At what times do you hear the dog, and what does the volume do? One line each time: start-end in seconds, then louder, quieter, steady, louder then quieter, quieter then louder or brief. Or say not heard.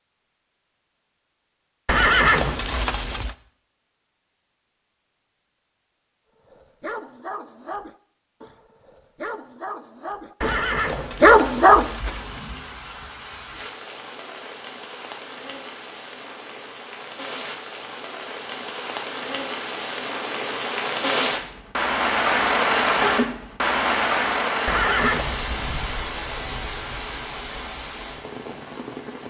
6.5-11.9 quieter then louder.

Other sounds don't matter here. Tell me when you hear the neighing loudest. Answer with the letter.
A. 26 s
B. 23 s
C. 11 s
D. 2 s
D.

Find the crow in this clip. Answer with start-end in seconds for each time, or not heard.
not heard.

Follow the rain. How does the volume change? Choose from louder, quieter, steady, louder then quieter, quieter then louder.
louder then quieter.